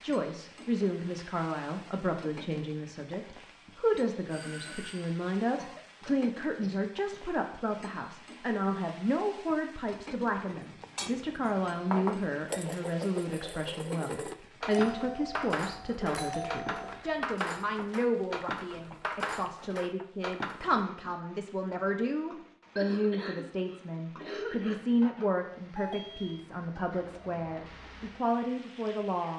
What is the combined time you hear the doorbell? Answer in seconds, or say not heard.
4 s.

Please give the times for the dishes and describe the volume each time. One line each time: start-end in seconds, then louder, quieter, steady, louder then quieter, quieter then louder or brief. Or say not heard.
10.4-20.9 steady.